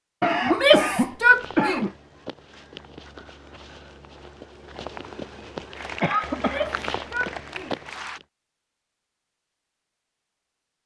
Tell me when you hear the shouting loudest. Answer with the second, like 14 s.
1 s.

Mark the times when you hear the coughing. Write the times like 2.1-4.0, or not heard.
0.2-1.9, 6.0-6.7.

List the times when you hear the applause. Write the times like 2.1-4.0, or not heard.
5.8-8.2.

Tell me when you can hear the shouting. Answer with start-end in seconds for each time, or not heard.
0.4-1.9, 6.3-7.8.